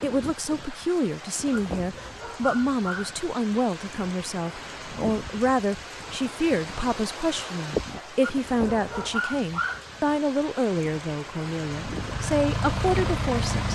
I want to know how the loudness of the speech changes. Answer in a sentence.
The volume of the speech stays about the same.